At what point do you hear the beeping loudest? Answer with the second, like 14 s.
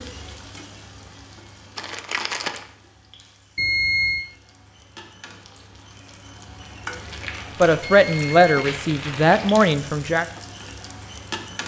4 s.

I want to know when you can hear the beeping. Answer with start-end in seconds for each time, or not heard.
3.5-4.2, 7.8-8.7.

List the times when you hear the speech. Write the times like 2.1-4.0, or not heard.
7.6-10.2.